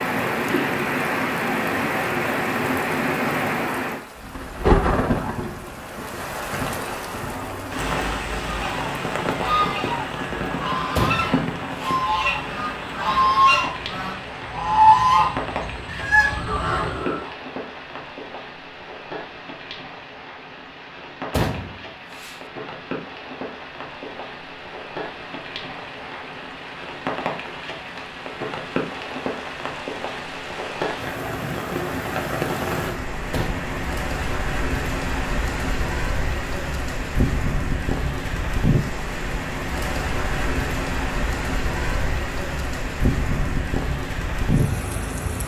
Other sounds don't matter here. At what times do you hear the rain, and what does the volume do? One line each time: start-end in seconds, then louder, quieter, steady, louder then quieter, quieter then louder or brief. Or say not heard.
0.0-45.4 quieter then louder.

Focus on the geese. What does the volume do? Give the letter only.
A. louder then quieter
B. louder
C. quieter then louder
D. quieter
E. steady
A.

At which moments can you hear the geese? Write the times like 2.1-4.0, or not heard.
8.4-17.3.